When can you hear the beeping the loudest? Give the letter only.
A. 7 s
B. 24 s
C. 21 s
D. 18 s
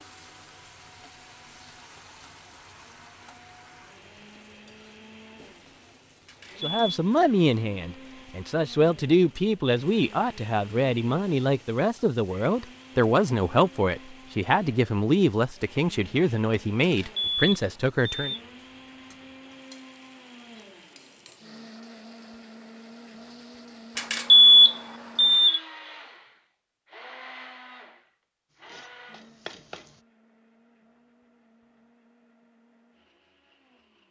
B.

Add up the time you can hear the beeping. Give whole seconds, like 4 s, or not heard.
4 s.